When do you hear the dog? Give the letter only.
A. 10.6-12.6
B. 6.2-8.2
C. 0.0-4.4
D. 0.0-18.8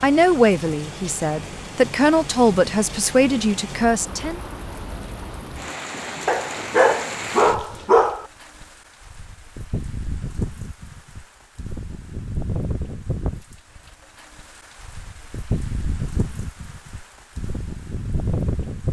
B.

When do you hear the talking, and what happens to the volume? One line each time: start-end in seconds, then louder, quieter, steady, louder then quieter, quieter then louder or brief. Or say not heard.
0.0-4.4 steady.